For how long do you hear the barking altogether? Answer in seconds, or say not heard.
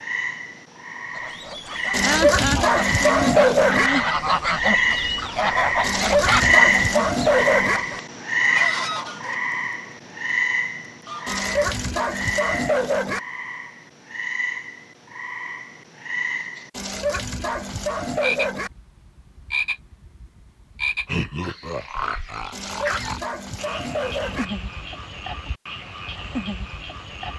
10 s.